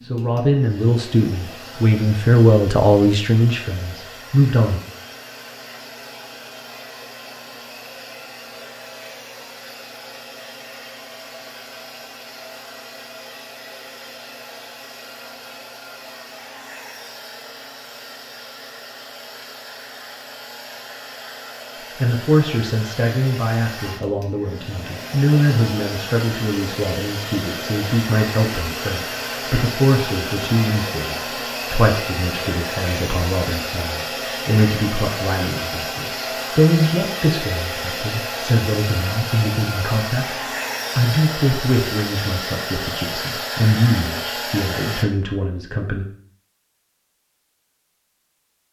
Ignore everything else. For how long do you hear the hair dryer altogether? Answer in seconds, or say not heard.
45 s.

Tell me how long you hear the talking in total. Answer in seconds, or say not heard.
29 s.